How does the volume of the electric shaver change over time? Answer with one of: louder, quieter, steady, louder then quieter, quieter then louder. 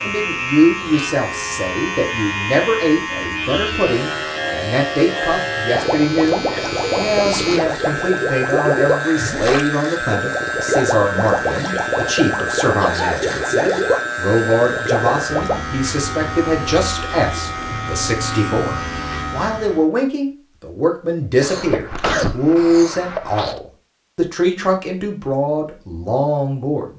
steady.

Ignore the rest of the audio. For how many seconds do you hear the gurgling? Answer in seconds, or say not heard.
10 s.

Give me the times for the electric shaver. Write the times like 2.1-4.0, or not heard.
0.0-19.9.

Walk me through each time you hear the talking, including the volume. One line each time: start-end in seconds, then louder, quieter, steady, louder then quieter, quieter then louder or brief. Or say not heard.
0.0-26.9 steady.